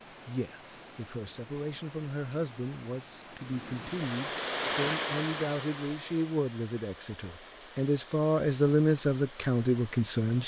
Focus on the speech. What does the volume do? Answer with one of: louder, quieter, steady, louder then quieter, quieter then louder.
louder.